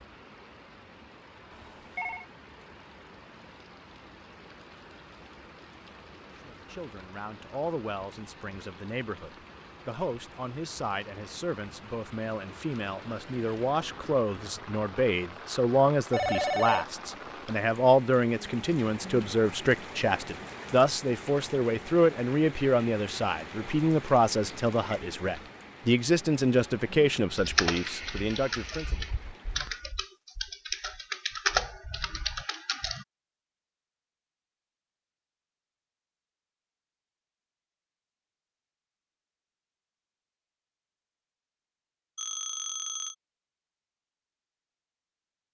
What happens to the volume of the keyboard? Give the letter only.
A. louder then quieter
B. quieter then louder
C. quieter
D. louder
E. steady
A.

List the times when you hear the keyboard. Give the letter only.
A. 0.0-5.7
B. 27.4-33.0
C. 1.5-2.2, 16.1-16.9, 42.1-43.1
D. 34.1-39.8
B.